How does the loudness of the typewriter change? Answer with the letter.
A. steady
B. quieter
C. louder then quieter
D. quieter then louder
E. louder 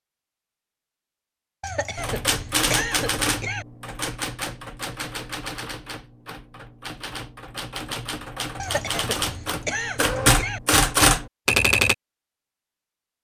D.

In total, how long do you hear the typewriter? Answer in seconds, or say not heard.
10 s.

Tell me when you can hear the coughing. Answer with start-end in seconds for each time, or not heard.
1.6-3.6, 8.6-10.6.